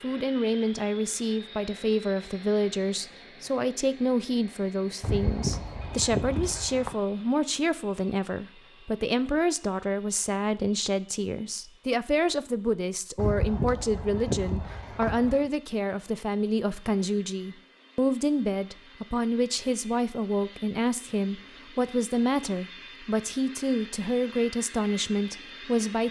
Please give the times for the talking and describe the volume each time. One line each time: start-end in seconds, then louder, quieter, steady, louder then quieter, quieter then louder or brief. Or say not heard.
0.0-26.0 steady.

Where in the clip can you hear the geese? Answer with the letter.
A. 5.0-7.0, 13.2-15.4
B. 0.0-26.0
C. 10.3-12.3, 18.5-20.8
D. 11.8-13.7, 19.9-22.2
A.